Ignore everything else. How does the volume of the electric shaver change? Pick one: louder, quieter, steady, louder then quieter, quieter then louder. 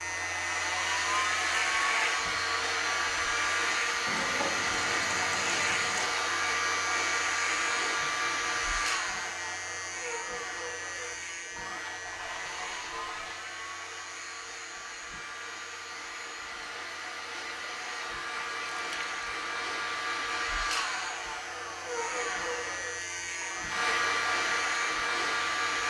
quieter then louder.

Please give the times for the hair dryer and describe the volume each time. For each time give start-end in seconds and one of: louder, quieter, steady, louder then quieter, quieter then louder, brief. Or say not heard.
0.0-25.8 quieter then louder.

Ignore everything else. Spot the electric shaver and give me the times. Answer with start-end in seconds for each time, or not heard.
0.0-25.8.